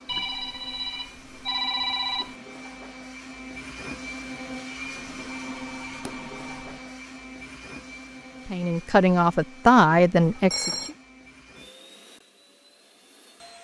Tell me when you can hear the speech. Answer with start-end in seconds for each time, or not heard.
8.4-10.9.